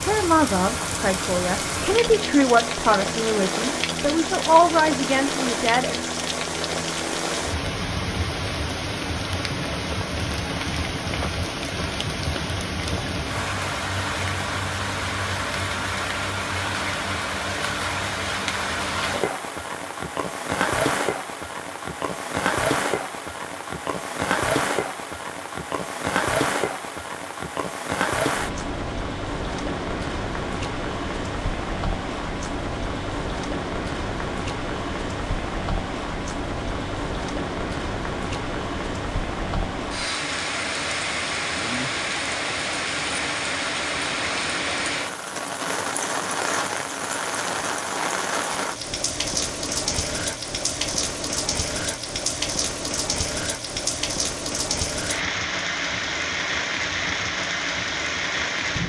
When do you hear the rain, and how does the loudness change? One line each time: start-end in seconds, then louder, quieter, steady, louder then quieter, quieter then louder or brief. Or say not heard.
0.0-58.8 steady.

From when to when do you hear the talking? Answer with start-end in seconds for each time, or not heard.
0.0-6.0.